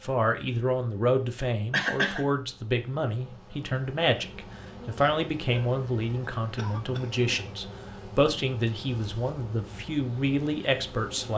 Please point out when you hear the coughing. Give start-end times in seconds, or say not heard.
1.7-2.2, 6.5-7.5.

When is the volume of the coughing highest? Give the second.
2 s.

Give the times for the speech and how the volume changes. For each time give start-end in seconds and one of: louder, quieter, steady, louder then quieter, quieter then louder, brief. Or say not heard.
0.0-11.3 steady.